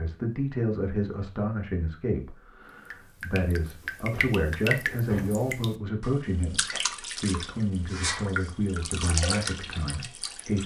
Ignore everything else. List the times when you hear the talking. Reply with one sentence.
You can hear the talking from 0.0 to 10.6 s.